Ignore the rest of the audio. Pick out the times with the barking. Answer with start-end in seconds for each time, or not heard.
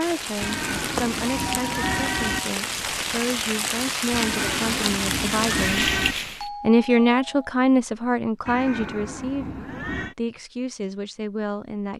not heard.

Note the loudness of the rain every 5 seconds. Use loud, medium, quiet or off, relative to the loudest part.
loud, loud, off.